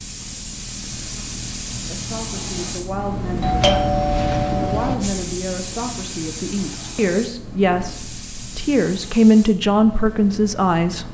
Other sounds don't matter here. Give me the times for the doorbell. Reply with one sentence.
The doorbell can be heard from 3.4 to 5.0 s.